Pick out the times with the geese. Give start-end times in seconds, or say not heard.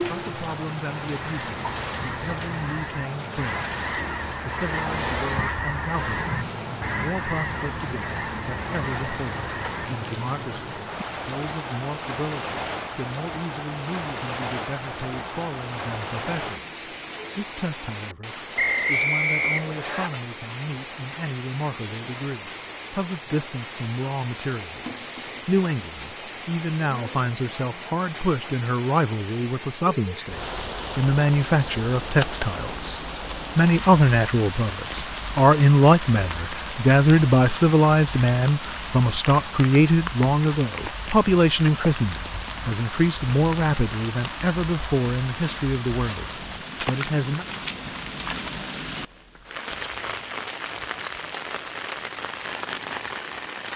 1.3-9.9.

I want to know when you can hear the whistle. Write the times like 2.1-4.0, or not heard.
18.6-20.1.